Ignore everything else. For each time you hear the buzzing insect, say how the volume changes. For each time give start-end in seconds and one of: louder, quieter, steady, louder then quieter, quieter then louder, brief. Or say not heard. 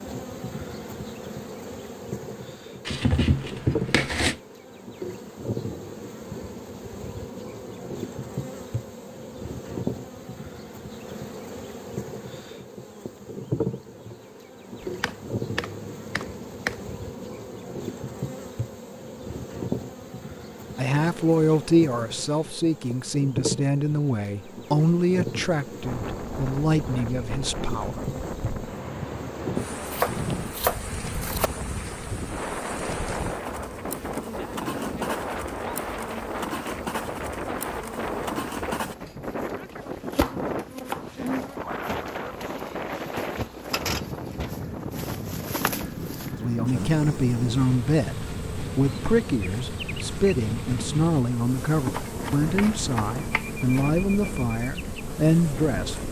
0.0-56.0 steady.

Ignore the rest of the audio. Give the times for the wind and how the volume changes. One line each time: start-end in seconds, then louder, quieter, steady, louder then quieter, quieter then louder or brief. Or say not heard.
25.8-56.0 steady.